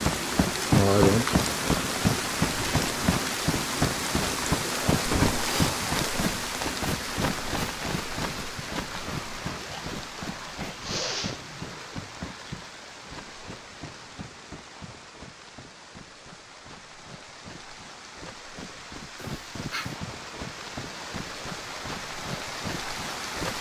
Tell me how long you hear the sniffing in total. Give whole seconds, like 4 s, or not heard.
2 s.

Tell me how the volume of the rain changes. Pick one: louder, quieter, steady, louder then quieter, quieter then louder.
quieter then louder.